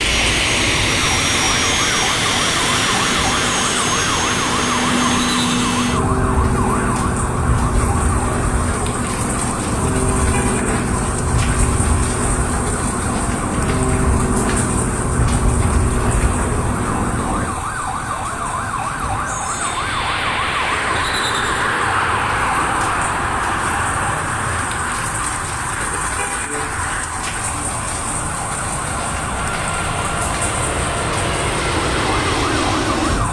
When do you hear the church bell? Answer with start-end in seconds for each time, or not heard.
not heard.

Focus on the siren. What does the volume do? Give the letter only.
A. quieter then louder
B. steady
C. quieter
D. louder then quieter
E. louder
B.